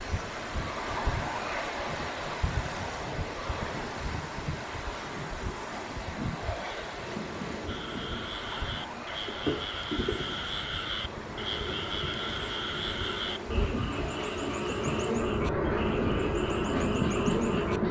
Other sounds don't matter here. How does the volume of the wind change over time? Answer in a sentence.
The volume of the wind goes down.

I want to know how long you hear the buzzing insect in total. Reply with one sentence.
You can hear the buzzing insect for 11 seconds altogether.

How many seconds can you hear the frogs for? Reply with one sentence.
You can hear the frogs for 10 seconds altogether.